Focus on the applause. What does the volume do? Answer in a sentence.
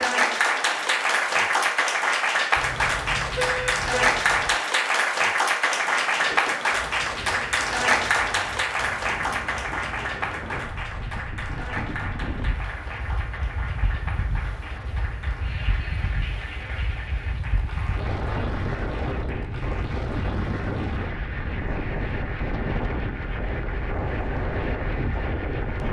The volume of the applause goes down.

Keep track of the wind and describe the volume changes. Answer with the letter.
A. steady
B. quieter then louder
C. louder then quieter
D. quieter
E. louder
E.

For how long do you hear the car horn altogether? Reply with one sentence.
You can hear the car horn for 2 seconds altogether.